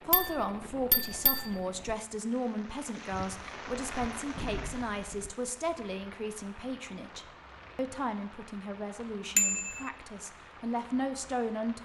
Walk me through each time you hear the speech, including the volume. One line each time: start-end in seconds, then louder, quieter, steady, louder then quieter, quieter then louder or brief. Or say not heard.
0.1-11.8 steady.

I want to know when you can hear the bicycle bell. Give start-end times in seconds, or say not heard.
0.1-1.9, 9.3-9.9.